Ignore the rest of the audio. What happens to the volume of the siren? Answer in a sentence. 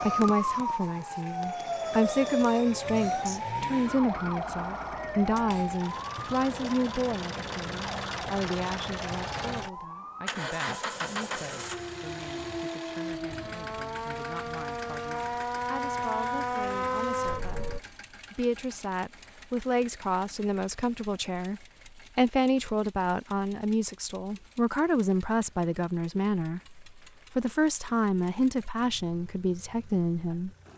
The loudness of the siren goes down, then up.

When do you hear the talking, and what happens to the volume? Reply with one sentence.
You can hear the talking from 0.0 to 30.5 s, getting quieter then louder.